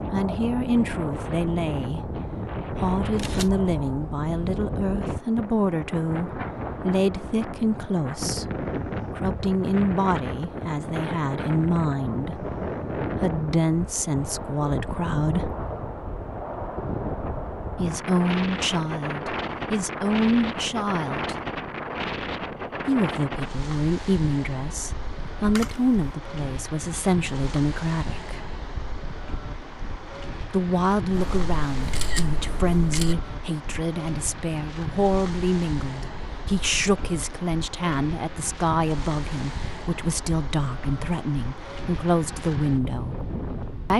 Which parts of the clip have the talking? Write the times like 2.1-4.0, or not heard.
0.1-15.5, 17.8-21.4, 22.9-28.4, 30.4-43.2.